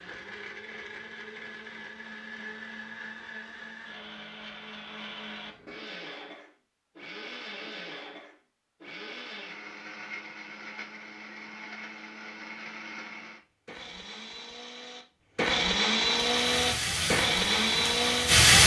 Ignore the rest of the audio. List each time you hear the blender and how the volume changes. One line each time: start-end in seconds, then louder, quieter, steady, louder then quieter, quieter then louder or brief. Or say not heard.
0.0-18.5 louder.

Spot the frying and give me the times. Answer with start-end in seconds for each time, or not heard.
16.1-18.6.